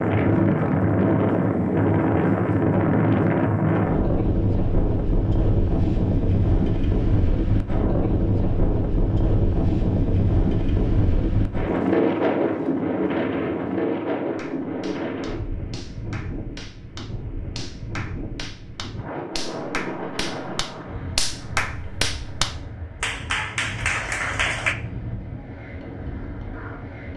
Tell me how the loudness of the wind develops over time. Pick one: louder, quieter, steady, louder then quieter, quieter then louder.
quieter.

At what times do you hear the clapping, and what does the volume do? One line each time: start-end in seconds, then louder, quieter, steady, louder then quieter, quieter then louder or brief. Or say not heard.
14.3-24.8 louder.